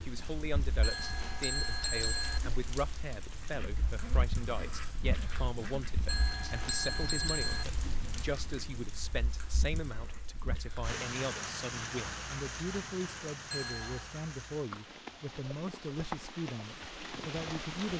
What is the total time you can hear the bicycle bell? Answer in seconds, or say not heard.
4 s.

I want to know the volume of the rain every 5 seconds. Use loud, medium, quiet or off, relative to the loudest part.
medium, medium, loud, loud.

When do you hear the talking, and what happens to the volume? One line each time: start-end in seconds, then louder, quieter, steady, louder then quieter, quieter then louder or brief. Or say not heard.
0.0-17.9 steady.